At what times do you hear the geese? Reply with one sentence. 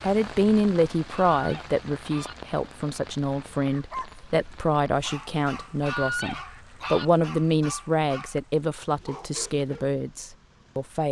You can hear the geese from 1.1 to 2.4 s and from 5.8 to 7.0 s.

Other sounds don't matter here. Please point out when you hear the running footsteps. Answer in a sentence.
You can't hear the running footsteps here.